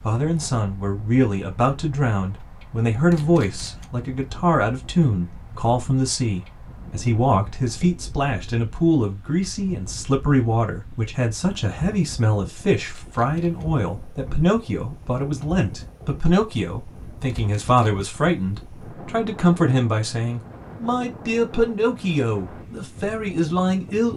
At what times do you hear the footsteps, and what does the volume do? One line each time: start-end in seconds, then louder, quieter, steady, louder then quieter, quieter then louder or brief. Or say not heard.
not heard.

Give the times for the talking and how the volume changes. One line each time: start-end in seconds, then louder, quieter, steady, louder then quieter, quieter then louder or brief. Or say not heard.
0.0-24.1 steady.